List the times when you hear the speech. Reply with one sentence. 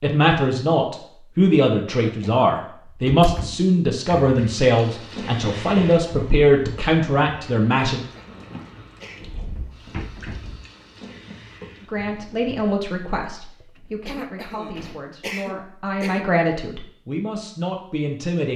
The speech can be heard from 0.0 to 8.0 s and from 11.8 to 18.5 s.